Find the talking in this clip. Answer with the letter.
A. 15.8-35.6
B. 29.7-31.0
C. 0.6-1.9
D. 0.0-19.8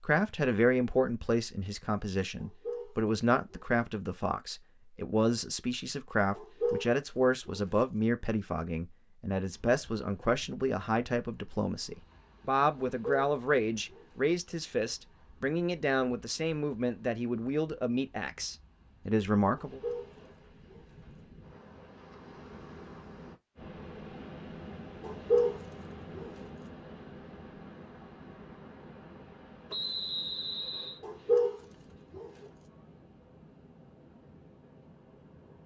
D.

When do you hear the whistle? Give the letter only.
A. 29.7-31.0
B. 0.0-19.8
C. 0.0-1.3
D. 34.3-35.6
A.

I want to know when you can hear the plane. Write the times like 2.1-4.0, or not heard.
not heard.